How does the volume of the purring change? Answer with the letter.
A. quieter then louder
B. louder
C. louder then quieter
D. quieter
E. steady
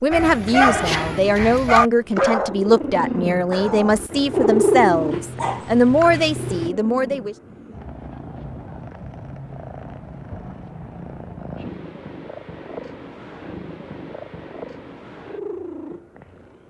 D.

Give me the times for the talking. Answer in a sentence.
You can hear the talking from 0.0 to 7.3 s.